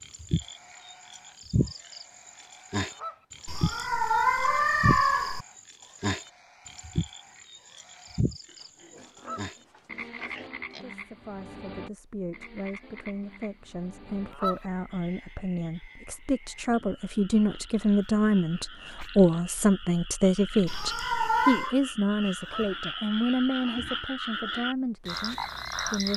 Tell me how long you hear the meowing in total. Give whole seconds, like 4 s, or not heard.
3 s.